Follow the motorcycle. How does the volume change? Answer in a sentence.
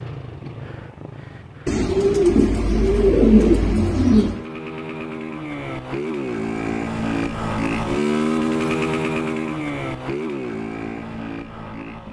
The volume of the motorcycle goes up, then down.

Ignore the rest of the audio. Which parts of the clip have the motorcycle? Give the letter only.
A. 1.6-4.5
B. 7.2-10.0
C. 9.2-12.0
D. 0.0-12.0
D.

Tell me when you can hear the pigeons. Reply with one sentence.
You can hear the pigeons from 1.6 to 4.5 s.